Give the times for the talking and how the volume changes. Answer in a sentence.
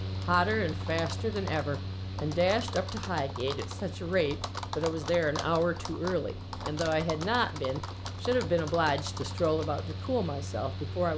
You can hear the talking from 0.2 to 11.1 s, at a steady volume.